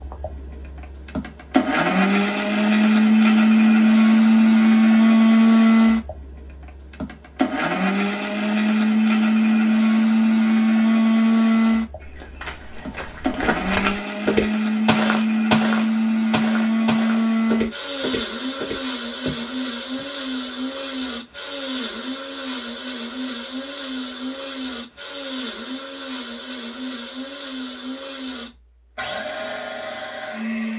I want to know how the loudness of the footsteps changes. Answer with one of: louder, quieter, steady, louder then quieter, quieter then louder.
louder then quieter.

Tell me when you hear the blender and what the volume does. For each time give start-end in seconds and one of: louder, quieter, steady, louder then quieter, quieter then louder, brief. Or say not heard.
0.0-30.7 quieter.